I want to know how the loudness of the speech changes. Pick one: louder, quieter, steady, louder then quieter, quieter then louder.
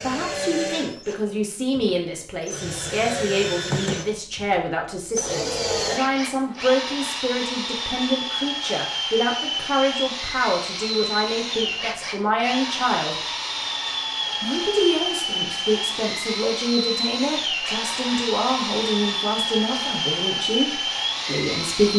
steady.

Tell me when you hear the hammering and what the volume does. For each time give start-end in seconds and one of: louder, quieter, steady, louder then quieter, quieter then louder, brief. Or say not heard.
not heard.